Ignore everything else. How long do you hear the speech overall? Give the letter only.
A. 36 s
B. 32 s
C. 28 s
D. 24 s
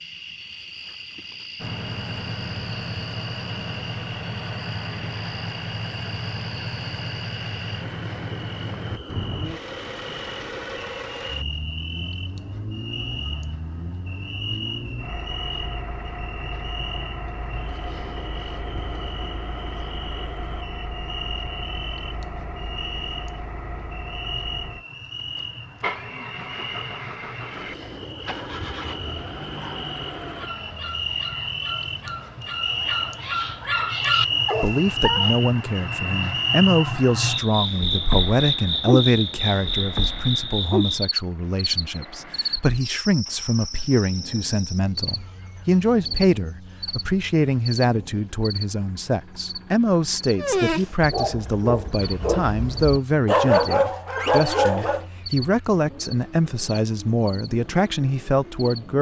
D.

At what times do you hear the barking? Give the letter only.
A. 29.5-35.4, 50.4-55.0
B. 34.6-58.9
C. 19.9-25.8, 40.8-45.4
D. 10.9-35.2
A.